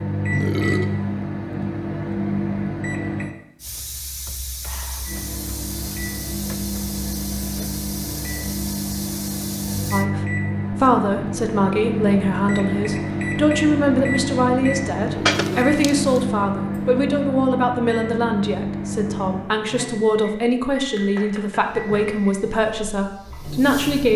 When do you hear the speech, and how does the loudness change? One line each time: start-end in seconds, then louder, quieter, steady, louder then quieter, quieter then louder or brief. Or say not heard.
9.9-24.1 steady.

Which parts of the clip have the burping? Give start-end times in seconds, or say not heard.
0.3-0.9, 15.1-15.7.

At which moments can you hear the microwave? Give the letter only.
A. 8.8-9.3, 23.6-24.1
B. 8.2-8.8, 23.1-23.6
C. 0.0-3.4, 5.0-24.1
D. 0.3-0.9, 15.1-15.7
C.